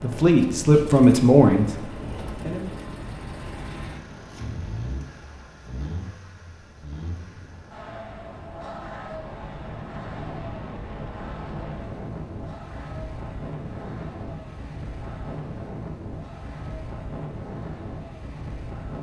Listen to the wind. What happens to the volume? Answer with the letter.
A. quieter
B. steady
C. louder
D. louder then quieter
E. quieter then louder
E.